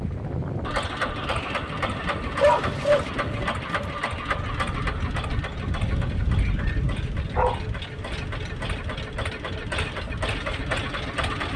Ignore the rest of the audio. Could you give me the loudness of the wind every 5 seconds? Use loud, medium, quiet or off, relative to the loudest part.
loud, loud, medium.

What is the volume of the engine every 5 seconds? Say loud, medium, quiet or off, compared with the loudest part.
loud, medium, loud.